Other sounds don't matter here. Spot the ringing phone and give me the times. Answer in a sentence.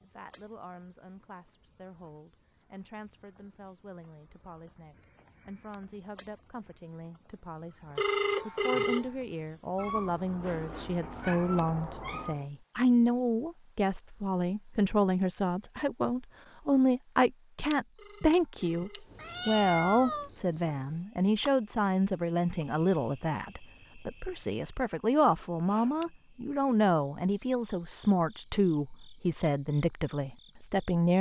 The ringing phone can be heard from 8.0 to 9.1 s and from 17.9 to 19.6 s.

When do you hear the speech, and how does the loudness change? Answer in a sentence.
The speech can be heard from 0.0 to 31.1 s, getting louder.